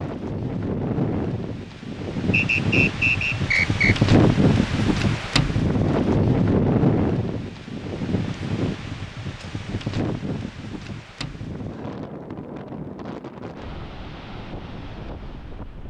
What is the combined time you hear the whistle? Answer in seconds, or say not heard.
2 s.